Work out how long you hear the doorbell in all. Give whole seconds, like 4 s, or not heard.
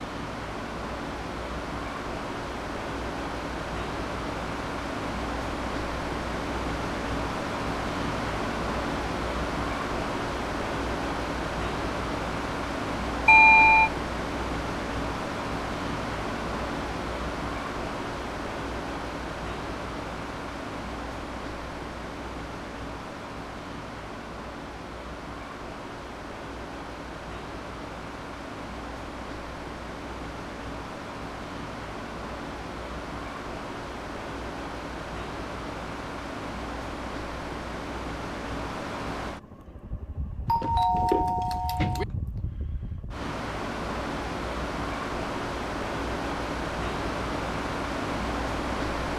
2 s.